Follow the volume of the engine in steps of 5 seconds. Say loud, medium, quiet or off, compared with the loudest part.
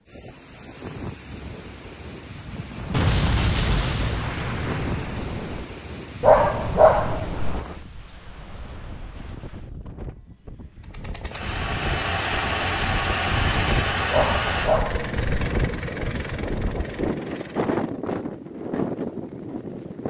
off, off, loud, medium.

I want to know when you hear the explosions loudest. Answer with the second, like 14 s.
3 s.